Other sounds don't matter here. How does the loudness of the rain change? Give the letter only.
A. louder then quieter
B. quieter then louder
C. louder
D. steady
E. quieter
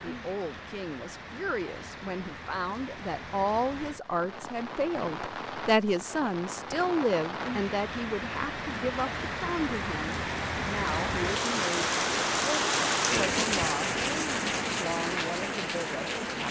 C.